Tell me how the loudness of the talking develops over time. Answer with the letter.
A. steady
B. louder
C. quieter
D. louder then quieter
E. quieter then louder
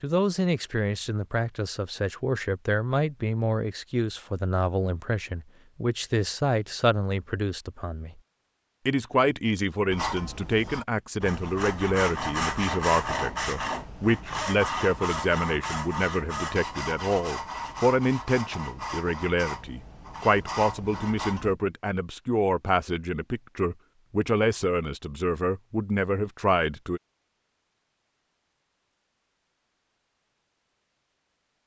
A.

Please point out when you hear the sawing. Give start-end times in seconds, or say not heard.
9.9-21.6.